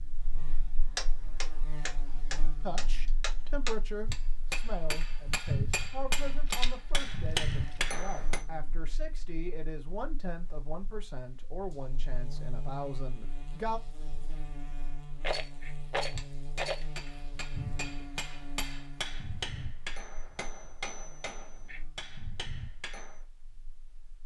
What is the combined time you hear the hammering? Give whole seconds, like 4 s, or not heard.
15 s.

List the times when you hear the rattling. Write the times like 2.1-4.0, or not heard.
6.5-7.8, 15.2-16.9.